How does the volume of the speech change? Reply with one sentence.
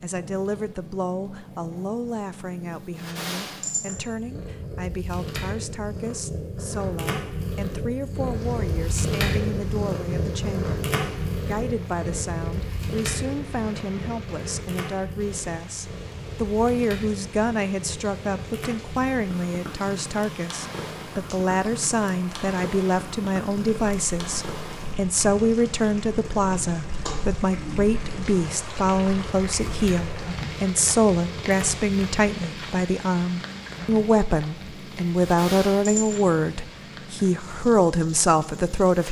The loudness of the speech goes up.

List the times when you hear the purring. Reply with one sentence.
You can hear the purring from 0.0 to 39.0 s.